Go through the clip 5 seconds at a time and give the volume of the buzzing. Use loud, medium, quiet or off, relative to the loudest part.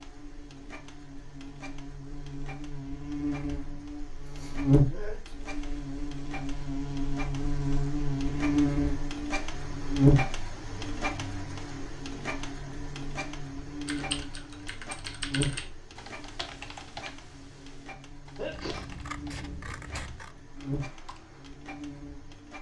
loud, loud, loud, medium, medium.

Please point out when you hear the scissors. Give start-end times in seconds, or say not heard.
18.5-20.4.